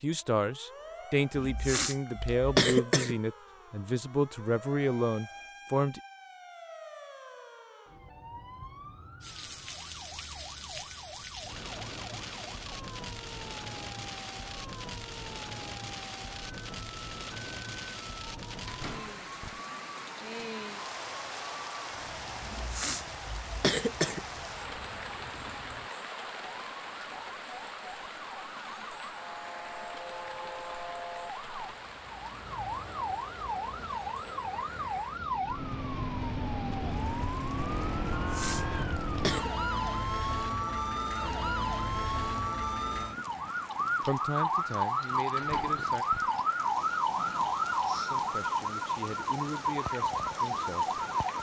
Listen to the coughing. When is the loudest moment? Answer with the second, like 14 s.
3 s.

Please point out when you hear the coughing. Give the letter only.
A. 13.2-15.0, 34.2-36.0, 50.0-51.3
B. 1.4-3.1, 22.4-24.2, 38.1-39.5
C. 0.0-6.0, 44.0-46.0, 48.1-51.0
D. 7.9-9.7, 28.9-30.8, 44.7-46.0
B.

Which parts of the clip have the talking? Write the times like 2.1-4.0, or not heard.
0.0-6.0, 44.0-46.0, 48.1-51.0.